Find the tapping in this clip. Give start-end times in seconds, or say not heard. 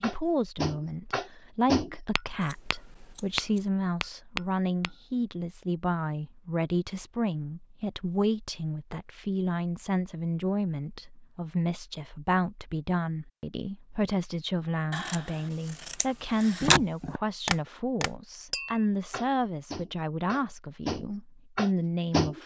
0.0-5.0, 16.6-22.4.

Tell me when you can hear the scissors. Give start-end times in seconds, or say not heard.
2.4-3.6, 14.9-16.8.